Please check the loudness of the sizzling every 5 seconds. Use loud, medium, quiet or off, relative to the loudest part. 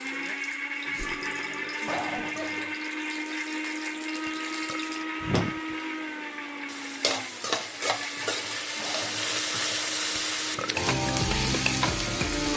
quiet, medium, loud.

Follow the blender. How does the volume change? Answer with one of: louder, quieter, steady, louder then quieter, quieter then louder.
quieter.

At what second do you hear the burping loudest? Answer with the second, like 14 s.
5 s.